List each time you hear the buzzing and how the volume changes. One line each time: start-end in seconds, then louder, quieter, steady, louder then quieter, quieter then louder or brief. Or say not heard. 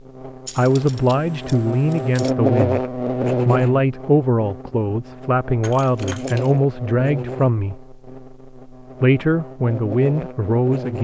0.0-10.9 louder then quieter.